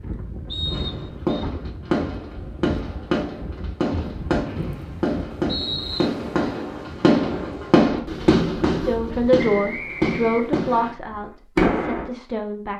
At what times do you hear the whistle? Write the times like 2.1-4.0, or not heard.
0.5-1.4, 4.5-6.0, 9.3-10.9.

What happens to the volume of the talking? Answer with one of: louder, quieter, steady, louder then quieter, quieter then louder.
quieter.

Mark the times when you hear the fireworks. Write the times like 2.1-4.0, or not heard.
0.7-12.1.